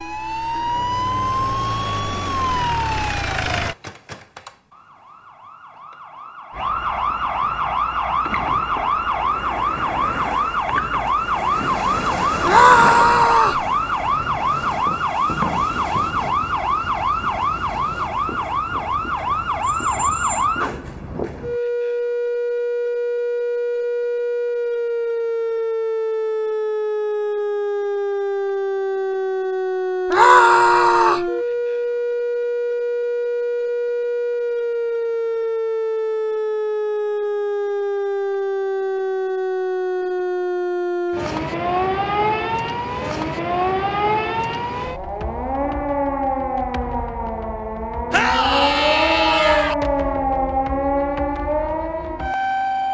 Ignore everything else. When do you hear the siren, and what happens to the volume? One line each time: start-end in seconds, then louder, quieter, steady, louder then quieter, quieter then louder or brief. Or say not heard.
0.0-52.8 steady.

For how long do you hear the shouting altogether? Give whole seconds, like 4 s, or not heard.
4 s.